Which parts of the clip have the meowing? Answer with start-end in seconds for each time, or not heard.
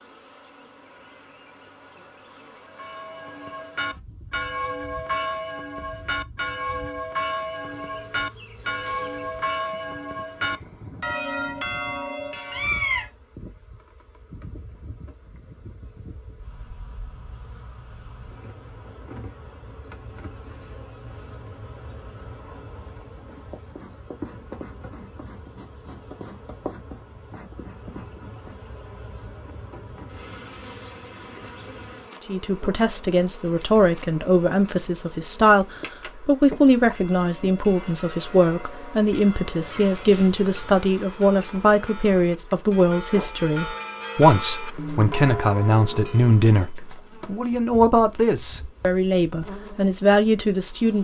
12.5-13.1, 39.5-40.8.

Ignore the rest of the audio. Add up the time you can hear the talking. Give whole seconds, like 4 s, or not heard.
19 s.